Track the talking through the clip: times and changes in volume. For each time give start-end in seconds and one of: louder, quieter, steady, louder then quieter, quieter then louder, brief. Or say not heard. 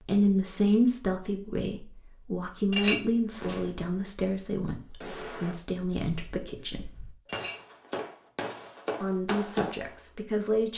0.1-6.9 quieter
9.0-10.7 brief.